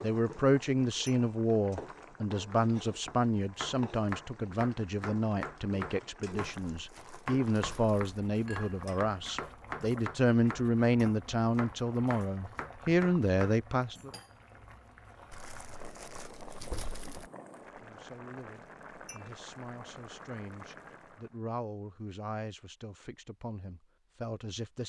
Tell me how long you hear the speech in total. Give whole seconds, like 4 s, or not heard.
21 s.